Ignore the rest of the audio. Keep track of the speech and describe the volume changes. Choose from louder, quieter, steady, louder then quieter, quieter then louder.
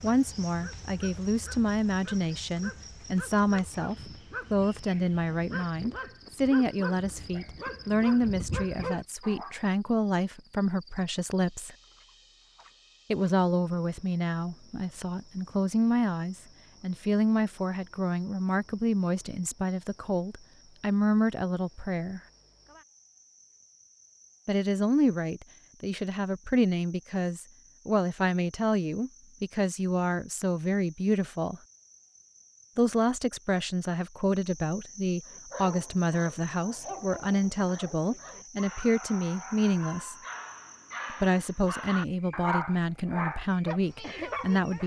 steady.